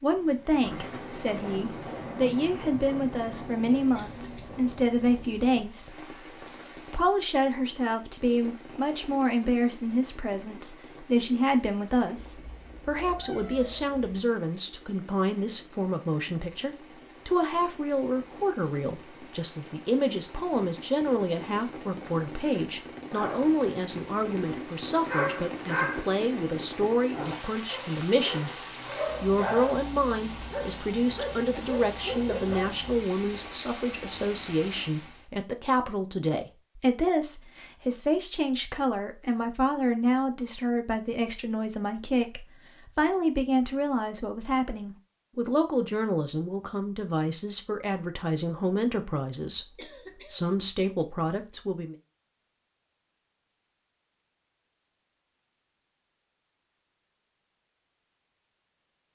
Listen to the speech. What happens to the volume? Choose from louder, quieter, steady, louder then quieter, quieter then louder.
steady.